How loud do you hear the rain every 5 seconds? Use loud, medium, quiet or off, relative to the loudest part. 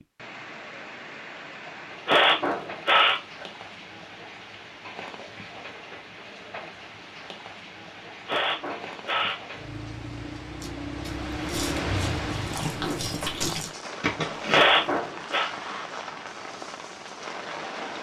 medium, medium, loud, loud.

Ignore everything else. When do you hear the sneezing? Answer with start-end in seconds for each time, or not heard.
2.0-3.5, 8.2-9.4, 14.5-15.5.